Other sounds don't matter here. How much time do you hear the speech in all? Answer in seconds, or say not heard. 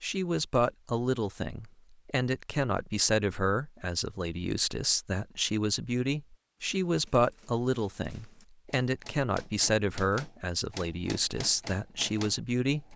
13 s.